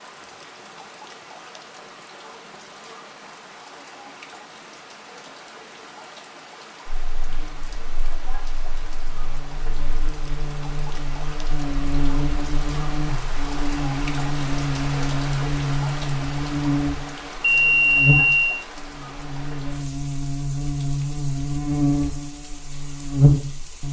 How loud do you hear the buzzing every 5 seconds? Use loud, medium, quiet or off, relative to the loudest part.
off, quiet, medium, loud, loud.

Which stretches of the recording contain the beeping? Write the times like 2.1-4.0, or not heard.
17.4-18.6.